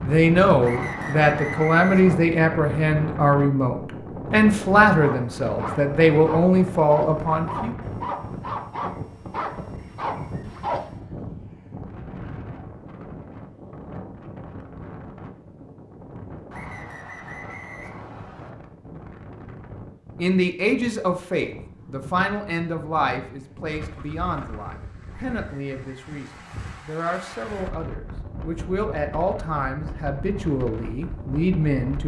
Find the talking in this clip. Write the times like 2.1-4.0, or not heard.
0.0-7.8, 20.1-32.0.